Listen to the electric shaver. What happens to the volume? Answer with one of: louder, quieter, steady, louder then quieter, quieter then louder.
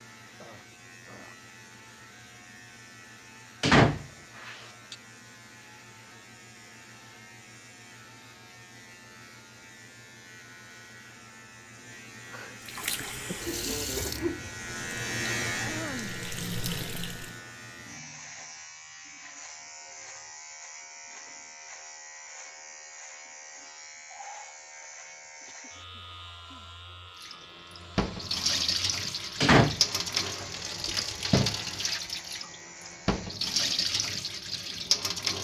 louder then quieter.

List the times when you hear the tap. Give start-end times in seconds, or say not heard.
12.6-17.4, 27.2-35.3.